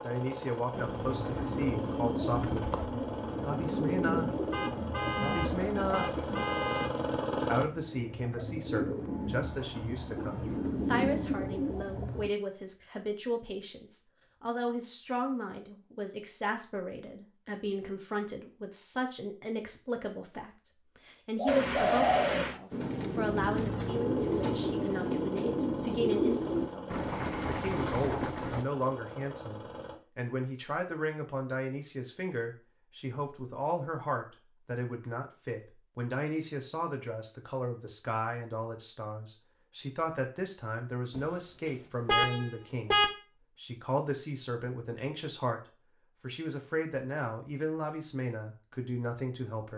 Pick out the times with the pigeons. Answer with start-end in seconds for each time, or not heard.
0.7-12.3, 21.4-28.6.